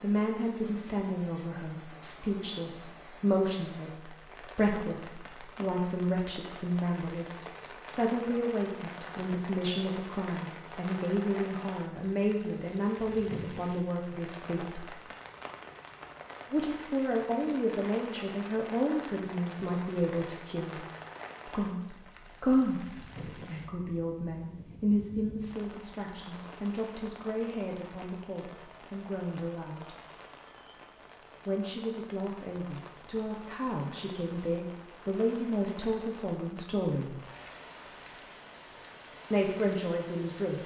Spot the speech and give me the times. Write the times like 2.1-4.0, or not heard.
0.0-14.8, 16.5-20.8, 21.4-30.0, 31.4-37.1, 39.3-40.6.